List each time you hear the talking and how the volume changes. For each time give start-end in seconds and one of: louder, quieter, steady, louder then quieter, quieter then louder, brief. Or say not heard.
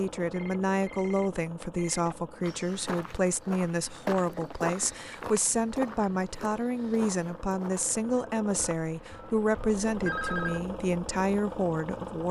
0.0-12.2 steady.